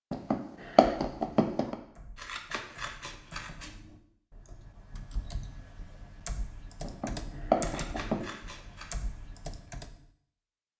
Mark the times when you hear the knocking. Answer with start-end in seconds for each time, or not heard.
0.1-1.8, 6.8-8.2.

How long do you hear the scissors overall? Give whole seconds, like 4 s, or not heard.
3 s.